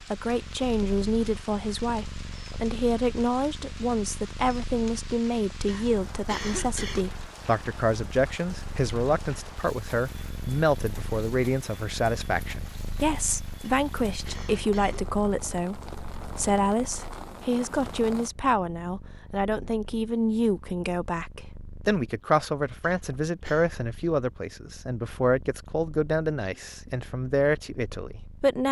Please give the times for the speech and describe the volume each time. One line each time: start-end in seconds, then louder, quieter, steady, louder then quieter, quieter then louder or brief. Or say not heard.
0.0-28.6 steady.